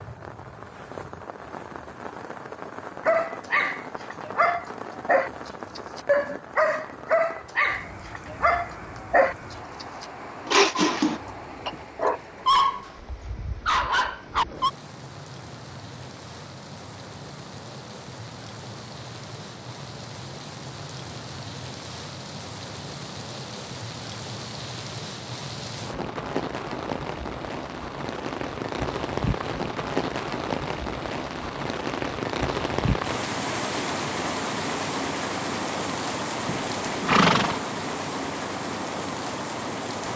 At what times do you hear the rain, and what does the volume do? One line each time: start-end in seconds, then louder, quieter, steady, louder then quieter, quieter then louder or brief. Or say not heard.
0.0-40.1 louder.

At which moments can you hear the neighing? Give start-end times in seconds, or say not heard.
36.5-37.6.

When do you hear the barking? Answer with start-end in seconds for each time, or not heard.
3.0-12.9, 13.7-14.7.